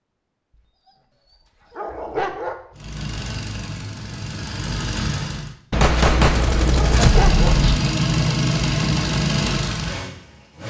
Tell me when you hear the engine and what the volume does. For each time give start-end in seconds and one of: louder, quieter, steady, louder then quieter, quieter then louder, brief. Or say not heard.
2.8-5.5 brief
6.6-10.6 quieter.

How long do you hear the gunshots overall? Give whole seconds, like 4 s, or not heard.
2 s.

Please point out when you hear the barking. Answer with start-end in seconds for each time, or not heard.
1.7-2.5, 6.7-7.5.